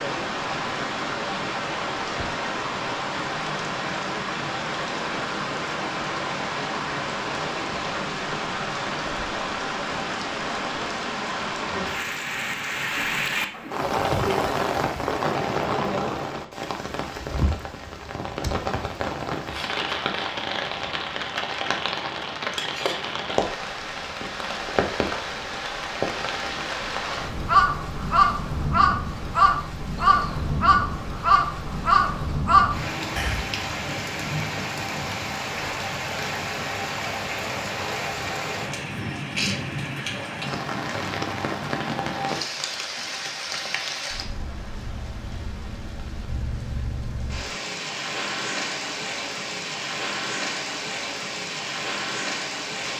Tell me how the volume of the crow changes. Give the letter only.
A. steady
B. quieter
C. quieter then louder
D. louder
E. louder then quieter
A.